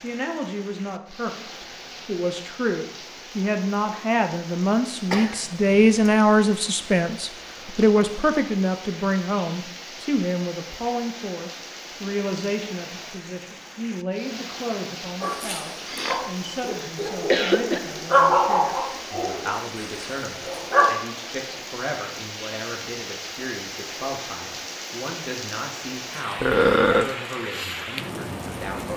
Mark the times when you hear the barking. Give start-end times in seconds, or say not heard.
15.2-20.9.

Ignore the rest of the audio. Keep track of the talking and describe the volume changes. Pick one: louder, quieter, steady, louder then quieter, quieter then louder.
quieter.